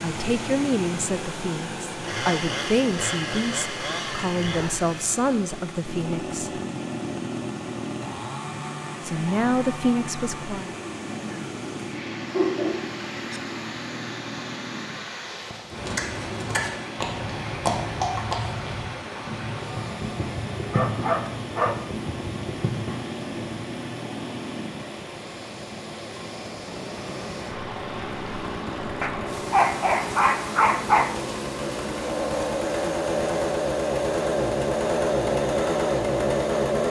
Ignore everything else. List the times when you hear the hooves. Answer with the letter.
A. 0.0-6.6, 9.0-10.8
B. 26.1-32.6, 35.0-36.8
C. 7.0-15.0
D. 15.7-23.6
D.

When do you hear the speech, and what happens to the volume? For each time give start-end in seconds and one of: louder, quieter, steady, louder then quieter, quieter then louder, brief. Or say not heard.
0.0-6.6 steady
9.0-10.8 brief.